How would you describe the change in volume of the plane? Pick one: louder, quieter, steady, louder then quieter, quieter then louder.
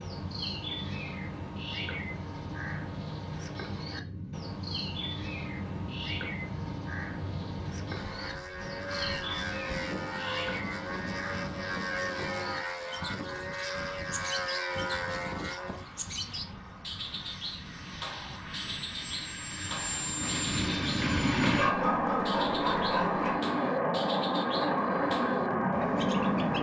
louder.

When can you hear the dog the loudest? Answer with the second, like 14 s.
22 s.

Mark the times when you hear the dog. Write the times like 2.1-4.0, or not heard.
21.4-23.4.